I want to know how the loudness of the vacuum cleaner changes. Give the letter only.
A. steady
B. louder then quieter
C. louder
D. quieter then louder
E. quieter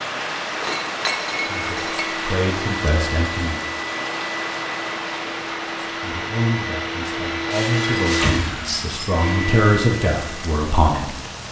C.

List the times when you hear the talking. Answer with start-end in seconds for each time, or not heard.
1.3-3.6, 6.0-11.2.